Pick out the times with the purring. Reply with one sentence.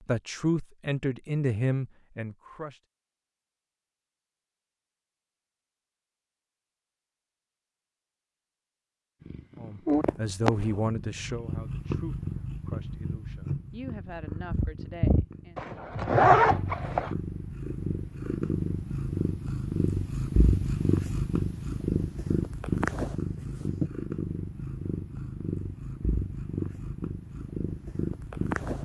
The purring can be heard from 9.2 to 28.8 s.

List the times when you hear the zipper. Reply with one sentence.
You can hear the zipper from 15.6 to 17.1 s.